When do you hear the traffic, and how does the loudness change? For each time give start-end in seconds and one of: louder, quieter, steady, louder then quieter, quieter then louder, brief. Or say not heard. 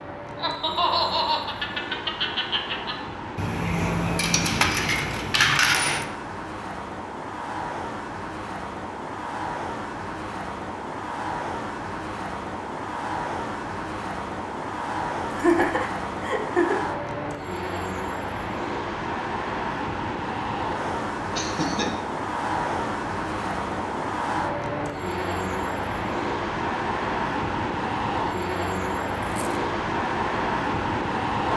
0.0-31.5 louder.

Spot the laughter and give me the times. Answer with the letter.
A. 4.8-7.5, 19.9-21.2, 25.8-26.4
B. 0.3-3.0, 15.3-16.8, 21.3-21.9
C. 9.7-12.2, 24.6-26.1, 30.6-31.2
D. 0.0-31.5
B.